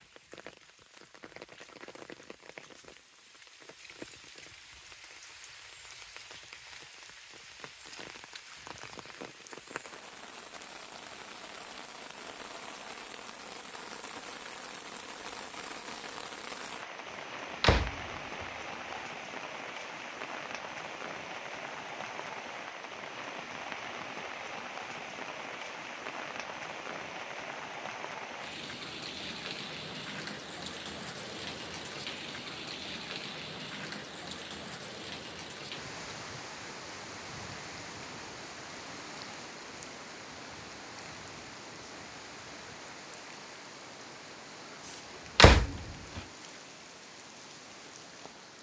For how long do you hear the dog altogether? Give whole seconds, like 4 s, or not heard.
not heard.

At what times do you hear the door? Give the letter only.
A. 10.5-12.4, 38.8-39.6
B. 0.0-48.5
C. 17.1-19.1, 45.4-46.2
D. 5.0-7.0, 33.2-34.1
C.